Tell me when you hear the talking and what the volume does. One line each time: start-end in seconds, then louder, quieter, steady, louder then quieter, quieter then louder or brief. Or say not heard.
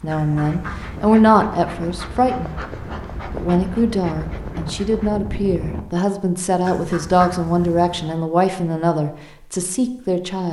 0.0-2.6 brief
3.2-10.4 steady.